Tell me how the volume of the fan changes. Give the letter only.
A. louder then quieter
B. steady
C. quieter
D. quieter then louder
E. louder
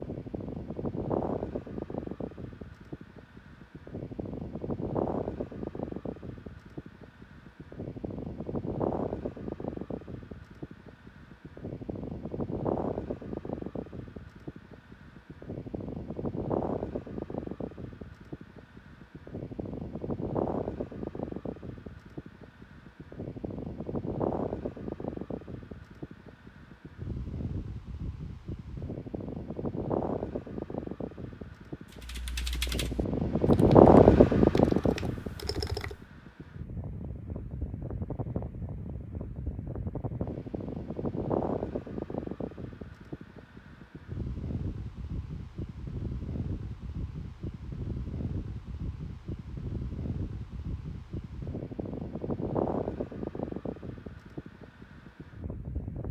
A.